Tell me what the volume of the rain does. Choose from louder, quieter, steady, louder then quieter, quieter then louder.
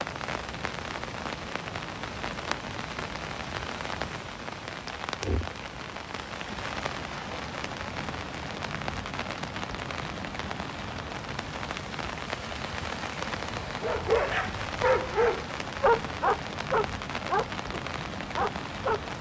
steady.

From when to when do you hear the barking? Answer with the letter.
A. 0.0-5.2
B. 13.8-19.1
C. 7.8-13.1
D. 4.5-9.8
B.